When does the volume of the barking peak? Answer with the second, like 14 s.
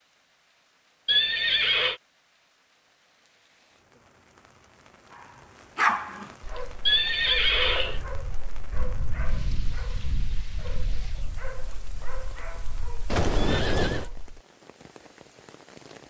6 s.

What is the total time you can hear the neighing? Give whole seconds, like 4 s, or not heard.
3 s.